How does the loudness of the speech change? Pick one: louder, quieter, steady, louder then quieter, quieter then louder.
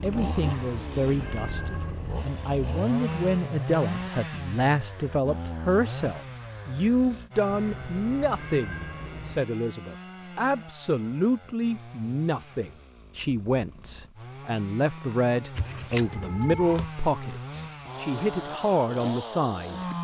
steady.